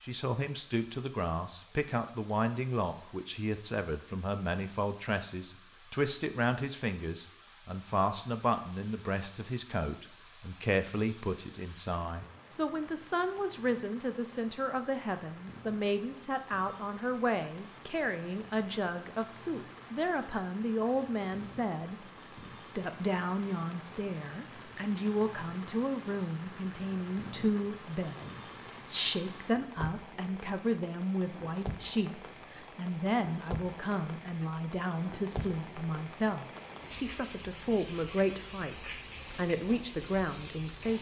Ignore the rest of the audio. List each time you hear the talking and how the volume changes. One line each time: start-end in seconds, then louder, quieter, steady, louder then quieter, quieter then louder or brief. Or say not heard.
0.0-40.9 steady.